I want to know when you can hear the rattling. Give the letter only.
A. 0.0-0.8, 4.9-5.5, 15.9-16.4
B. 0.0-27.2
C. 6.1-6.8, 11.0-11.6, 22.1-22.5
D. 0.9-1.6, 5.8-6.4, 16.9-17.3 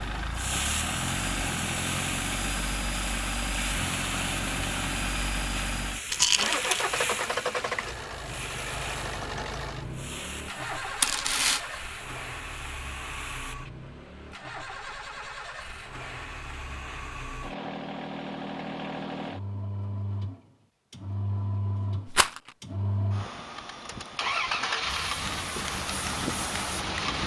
C.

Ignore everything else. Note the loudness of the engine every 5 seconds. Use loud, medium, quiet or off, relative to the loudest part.
loud, loud, medium, medium, loud, loud.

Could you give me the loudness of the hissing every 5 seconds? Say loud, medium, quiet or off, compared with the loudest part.
loud, loud, medium, off, off, medium.